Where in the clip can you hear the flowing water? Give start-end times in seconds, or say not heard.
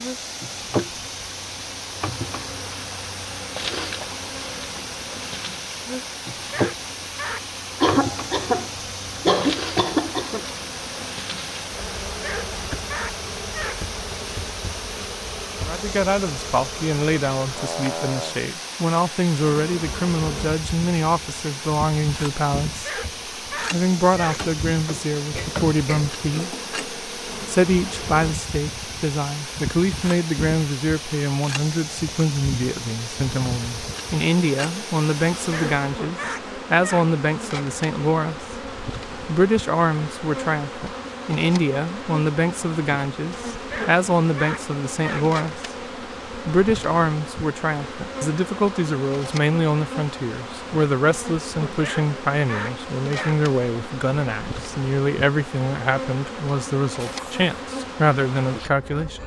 0.0-35.9.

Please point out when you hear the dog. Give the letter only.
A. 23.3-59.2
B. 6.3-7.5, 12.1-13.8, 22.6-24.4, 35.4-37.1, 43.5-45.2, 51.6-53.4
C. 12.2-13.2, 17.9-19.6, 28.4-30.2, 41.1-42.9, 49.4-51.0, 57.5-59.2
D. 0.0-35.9
B.